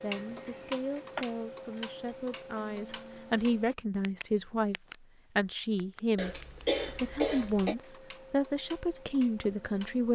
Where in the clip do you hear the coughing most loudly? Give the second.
7 s.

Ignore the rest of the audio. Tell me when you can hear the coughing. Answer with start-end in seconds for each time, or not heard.
0.2-1.2, 6.2-7.8.